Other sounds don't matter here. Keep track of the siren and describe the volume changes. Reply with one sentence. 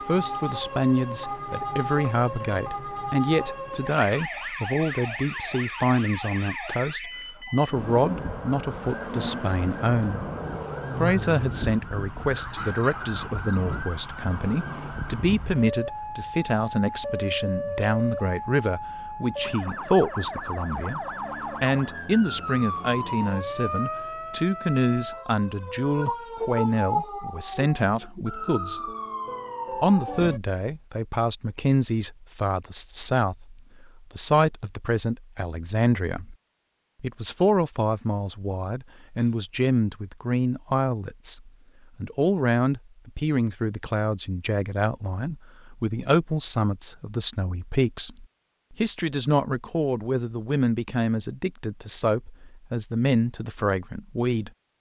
The volume of the siren stays about the same.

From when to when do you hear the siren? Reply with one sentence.
The siren can be heard from 0.0 to 30.4 s.